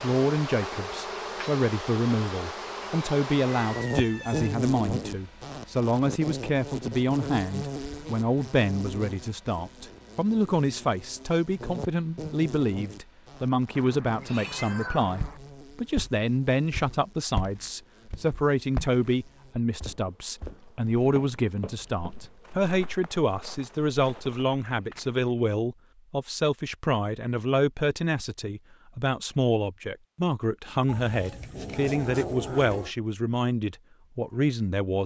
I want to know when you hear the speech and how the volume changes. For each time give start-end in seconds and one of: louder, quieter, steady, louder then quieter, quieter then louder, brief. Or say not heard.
0.0-35.0 steady.